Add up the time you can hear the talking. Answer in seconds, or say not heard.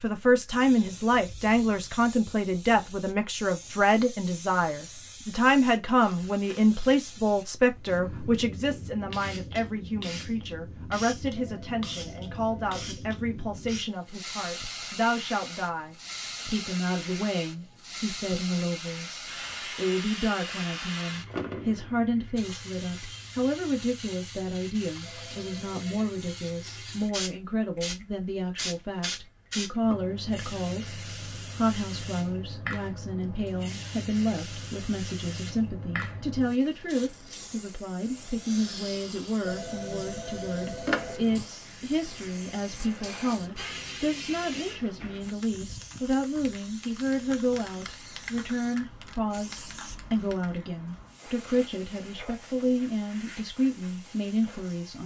55 s.